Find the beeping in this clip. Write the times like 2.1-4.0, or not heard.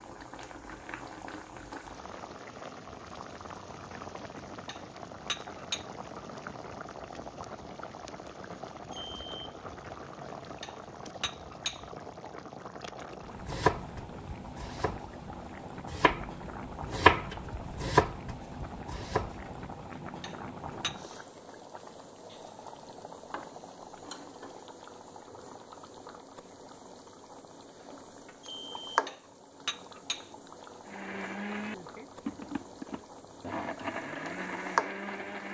8.9-9.5, 28.4-29.1.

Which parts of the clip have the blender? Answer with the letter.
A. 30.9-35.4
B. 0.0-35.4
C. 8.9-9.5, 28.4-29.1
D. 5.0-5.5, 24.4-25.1
A.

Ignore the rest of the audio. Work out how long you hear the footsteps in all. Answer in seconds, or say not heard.
not heard.